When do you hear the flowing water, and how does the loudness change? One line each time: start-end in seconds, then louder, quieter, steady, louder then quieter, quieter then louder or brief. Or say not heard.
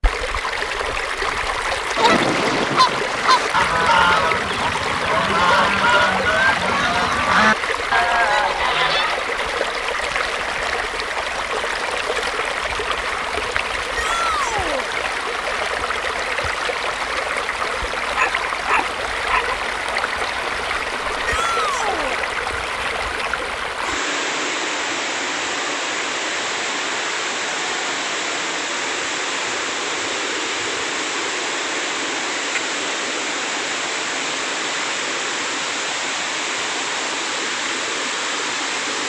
0.0-39.0 steady.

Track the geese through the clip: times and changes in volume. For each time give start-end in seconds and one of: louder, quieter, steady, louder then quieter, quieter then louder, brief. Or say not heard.
1.9-9.2 steady.